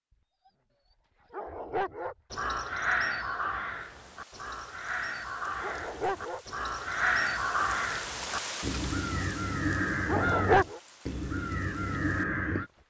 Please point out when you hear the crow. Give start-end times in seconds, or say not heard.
2.3-12.7.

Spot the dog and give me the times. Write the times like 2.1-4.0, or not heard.
1.3-2.1, 5.6-6.5, 10.1-10.8.